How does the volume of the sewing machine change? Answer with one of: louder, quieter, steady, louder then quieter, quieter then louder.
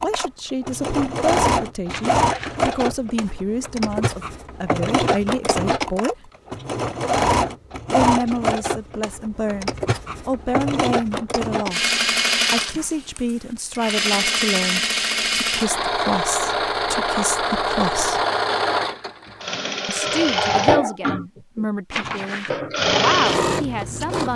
steady.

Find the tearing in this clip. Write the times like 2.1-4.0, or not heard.
1.9-2.8, 21.9-22.6.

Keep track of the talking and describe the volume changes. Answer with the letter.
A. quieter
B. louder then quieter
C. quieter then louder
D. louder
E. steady
E.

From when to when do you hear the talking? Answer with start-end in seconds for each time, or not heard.
0.0-6.3, 7.9-18.2, 19.9-24.3.